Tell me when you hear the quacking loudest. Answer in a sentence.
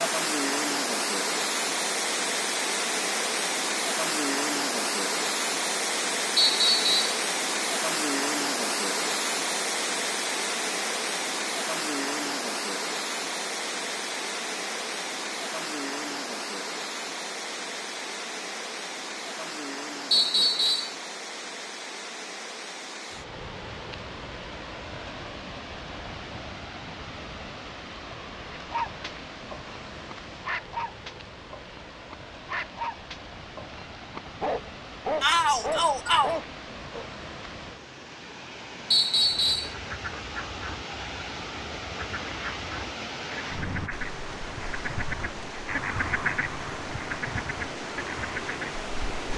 The loudest moment of the quacking is at 46 seconds.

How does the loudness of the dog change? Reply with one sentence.
The volume of the dog goes up.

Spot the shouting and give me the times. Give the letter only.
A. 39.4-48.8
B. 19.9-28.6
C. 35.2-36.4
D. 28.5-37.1
C.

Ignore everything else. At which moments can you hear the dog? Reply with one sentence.
The dog can be heard from 28.5 to 37.1 s.